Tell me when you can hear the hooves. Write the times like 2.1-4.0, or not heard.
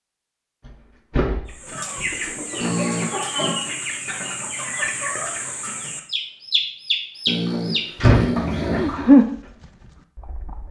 8.7-10.6.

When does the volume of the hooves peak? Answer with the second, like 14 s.
9 s.